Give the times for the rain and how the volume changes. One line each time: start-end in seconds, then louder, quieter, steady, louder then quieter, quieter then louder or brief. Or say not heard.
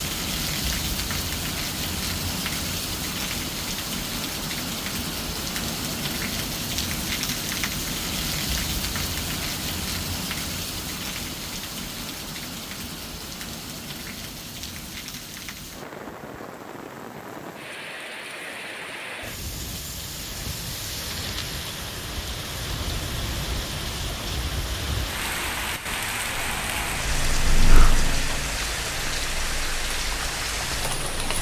0.0-31.3 quieter then louder.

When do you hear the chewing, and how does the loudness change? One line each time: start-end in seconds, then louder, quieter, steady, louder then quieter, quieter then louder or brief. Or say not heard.
not heard.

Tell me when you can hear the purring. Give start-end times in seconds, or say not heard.
26.4-31.3.